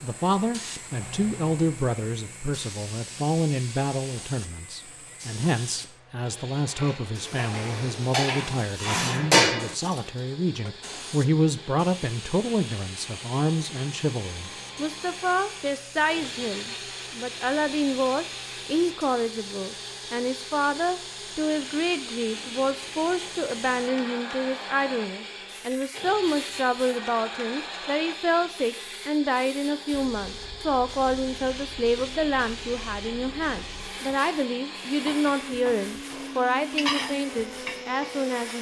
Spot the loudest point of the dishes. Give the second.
9 s.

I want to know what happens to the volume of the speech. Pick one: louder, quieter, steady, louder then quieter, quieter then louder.
steady.